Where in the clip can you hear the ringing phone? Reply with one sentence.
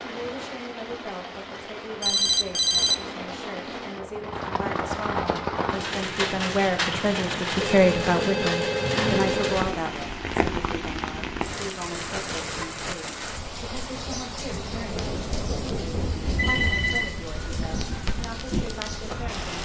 You can hear the ringing phone from 2.0 to 3.0 s, from 7.6 to 10.1 s and from 15.9 to 17.1 s.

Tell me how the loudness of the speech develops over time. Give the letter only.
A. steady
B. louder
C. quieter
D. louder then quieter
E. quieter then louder
D.